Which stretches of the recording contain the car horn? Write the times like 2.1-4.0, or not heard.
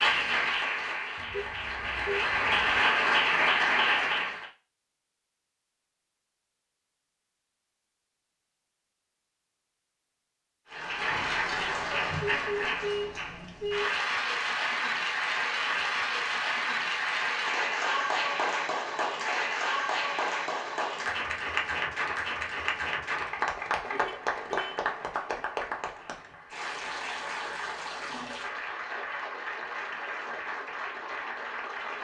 1.1-2.8, 12.2-13.9, 23.9-24.8.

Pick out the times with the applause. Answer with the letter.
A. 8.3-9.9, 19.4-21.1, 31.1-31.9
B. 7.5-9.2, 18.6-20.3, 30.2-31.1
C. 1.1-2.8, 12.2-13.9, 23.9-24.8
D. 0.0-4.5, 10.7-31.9
D.